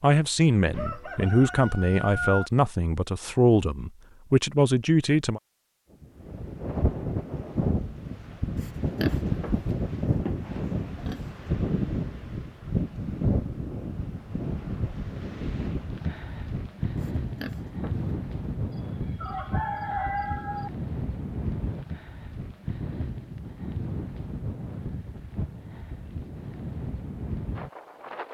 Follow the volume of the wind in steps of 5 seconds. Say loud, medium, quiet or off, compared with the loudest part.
off, loud, loud, loud, medium, medium.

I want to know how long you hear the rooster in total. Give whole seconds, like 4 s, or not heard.
4 s.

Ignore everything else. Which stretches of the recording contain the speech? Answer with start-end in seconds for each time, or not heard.
0.0-5.4.